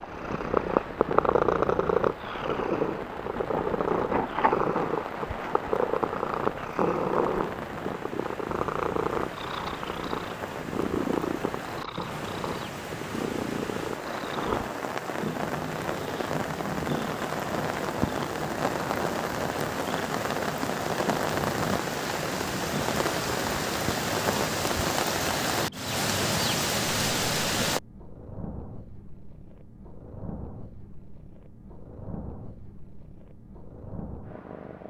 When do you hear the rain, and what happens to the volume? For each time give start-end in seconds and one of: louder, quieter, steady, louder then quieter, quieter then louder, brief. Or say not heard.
0.0-27.8 louder.